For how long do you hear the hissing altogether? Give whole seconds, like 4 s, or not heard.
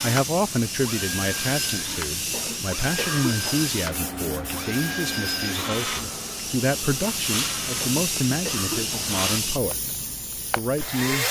11 s.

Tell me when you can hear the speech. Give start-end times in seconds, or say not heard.
0.0-9.9, 10.6-11.2.